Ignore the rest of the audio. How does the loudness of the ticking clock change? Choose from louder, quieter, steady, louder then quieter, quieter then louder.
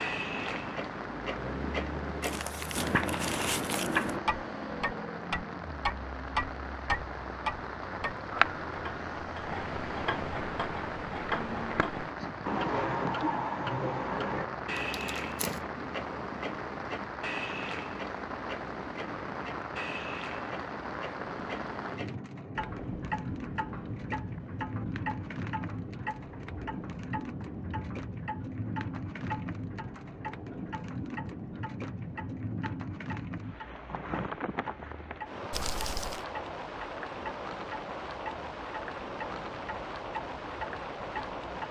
quieter.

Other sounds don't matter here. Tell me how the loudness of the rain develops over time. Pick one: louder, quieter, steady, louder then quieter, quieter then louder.
steady.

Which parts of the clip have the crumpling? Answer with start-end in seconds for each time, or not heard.
2.2-4.2, 14.8-15.6, 35.5-36.2.